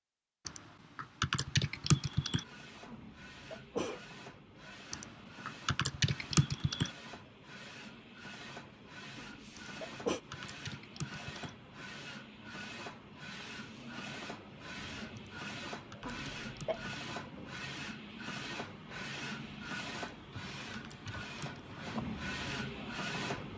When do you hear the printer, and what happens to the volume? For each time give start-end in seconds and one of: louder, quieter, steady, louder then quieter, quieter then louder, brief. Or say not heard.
2.0-23.5 louder.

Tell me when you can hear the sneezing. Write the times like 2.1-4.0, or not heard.
2.9-4.0, 9.2-10.2, 16.0-16.9.